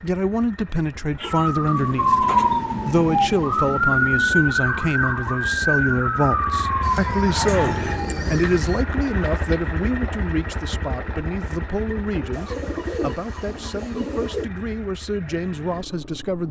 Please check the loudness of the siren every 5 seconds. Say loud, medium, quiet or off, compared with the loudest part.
loud, loud, off, off.